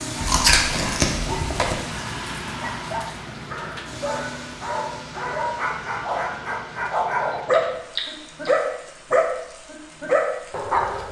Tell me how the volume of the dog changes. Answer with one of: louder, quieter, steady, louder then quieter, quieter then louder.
louder.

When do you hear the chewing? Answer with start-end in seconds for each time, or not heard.
0.2-1.9, 7.5-8.5.